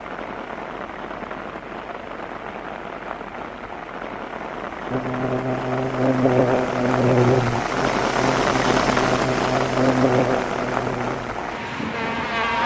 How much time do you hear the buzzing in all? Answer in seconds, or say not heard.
8 s.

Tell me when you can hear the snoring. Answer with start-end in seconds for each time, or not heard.
not heard.